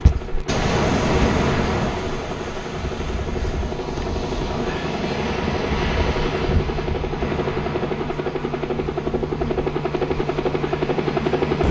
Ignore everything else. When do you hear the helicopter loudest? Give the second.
11 s.